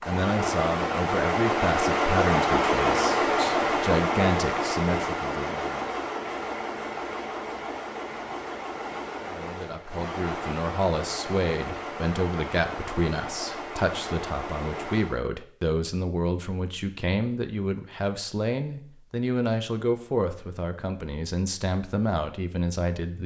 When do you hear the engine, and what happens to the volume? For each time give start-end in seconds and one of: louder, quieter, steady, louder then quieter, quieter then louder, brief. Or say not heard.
0.0-15.2 quieter.